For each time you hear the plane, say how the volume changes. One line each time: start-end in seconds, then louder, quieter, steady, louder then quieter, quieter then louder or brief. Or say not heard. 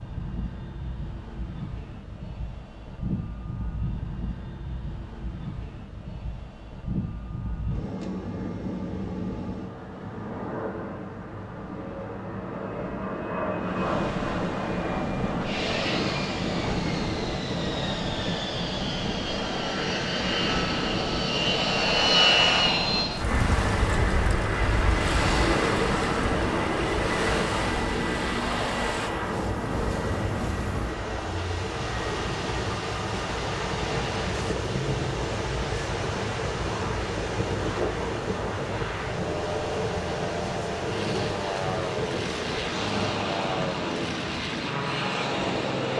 0.0-45.9 louder then quieter.